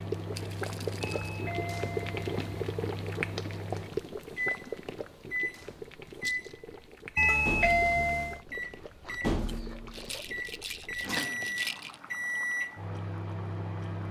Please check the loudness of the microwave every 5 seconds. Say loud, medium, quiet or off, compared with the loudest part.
medium, loud, loud.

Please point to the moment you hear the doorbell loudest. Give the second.
8 s.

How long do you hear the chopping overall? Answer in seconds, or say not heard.
not heard.